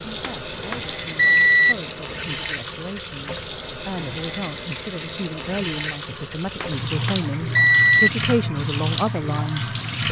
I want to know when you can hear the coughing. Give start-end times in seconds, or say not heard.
not heard.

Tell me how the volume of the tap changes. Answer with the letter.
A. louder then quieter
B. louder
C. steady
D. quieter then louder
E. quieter
C.